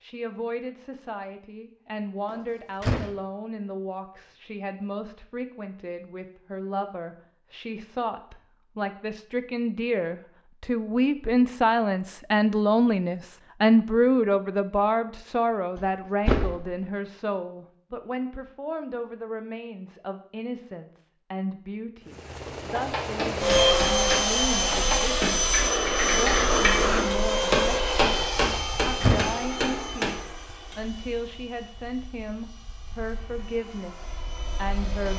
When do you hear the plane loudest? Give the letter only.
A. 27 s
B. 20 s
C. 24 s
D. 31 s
C.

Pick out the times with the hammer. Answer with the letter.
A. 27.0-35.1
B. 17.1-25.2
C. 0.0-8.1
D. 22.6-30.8
D.